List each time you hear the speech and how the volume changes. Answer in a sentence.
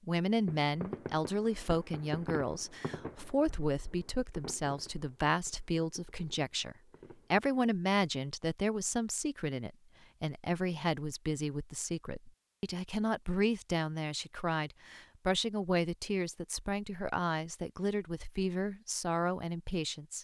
The speech can be heard from 0.1 to 20.2 s, at a steady volume.